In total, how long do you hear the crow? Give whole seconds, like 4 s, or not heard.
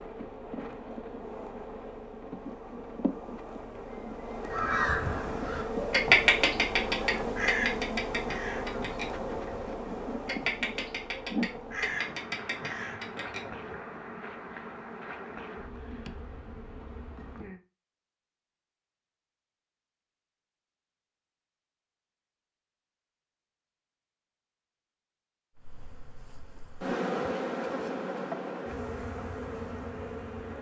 9 s.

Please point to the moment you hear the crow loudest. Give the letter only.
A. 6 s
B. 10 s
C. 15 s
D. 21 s
A.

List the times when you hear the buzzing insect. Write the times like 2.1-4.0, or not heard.
0.0-17.6, 25.6-30.5.